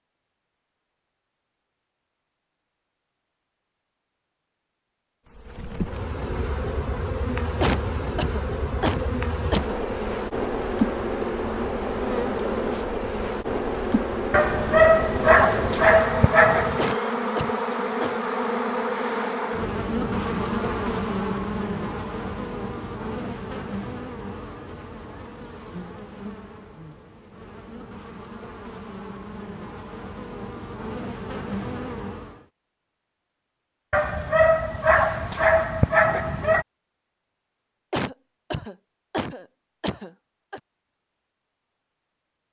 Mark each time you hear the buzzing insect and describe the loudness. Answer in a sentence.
You can hear the buzzing insect from 5.2 to 32.5 s, getting quieter.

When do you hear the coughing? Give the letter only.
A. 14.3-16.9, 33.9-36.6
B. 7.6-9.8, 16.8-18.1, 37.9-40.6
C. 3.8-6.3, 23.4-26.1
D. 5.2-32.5
B.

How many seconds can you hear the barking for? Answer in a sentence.
You can hear the barking for 5 seconds altogether.